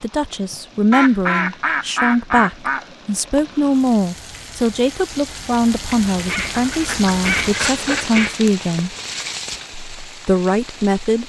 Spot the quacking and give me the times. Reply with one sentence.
You can hear the quacking from 0.9 to 2.9 s and from 5.8 to 8.3 s.